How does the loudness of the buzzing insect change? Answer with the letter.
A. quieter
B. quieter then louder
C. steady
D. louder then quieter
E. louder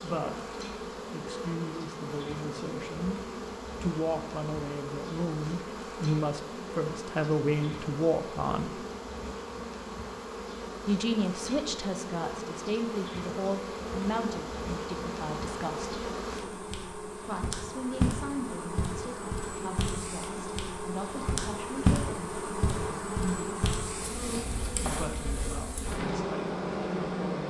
E.